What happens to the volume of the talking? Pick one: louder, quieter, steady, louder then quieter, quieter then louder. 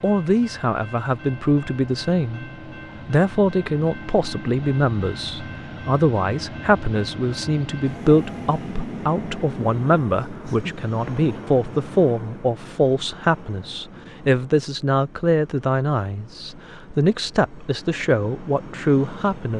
steady.